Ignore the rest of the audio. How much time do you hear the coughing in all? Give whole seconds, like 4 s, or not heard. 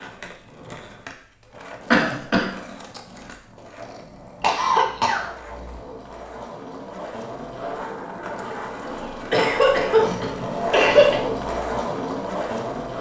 4 s.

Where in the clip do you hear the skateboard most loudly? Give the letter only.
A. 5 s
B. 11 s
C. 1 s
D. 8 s
B.